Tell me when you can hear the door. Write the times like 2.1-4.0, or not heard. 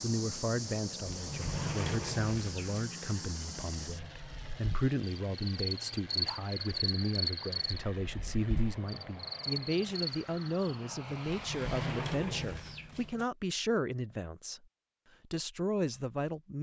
1.1-2.9, 11.2-13.2.